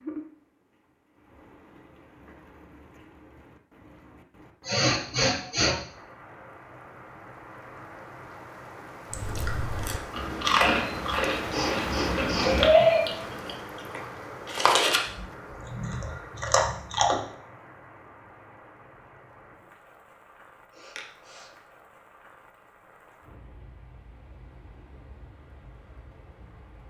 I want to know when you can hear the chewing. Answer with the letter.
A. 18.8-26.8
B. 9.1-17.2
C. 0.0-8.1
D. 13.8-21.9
B.